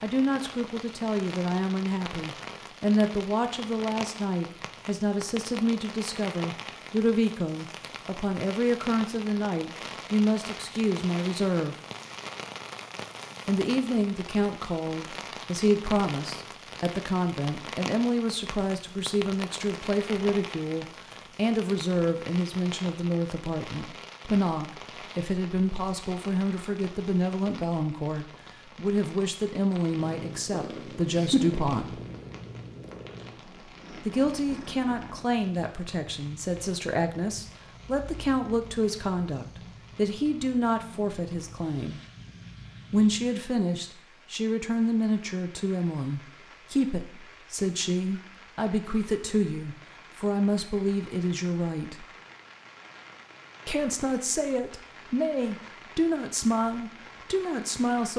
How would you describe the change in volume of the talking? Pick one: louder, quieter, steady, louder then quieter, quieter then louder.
steady.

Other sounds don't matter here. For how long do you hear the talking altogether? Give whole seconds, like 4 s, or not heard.
52 s.